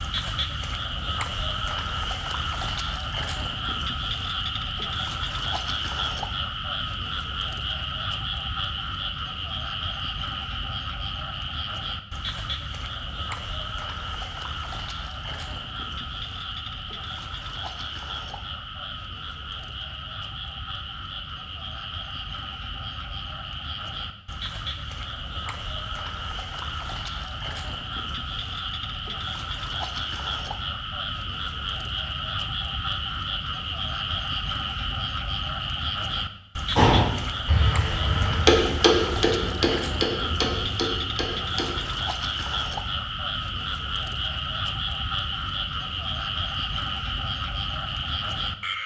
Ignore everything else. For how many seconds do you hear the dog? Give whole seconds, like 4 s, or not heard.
not heard.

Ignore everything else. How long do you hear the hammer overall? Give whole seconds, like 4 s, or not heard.
5 s.